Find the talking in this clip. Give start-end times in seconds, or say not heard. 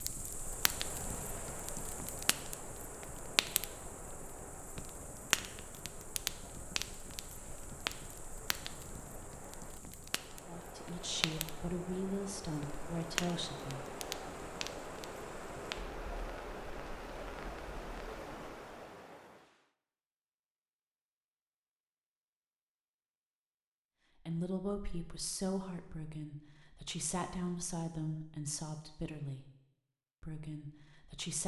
10.4-13.8, 24.2-29.4, 30.2-31.4.